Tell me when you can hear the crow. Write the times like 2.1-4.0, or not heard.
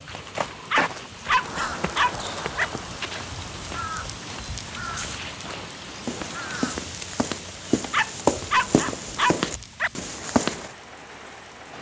1.2-7.0.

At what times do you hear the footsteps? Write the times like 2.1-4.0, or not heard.
0.1-10.7.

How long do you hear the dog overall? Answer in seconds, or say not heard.
4 s.